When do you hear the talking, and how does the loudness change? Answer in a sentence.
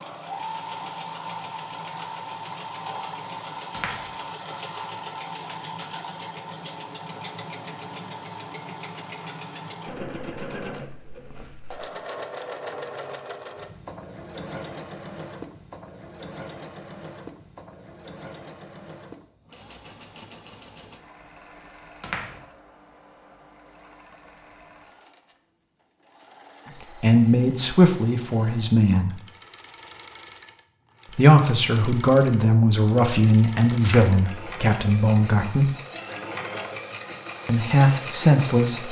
The talking can be heard briefly from 27.0 to 29.2 s; from 31.1 to 35.8 s, at a steady volume; and briefly from 37.5 to 38.8 s.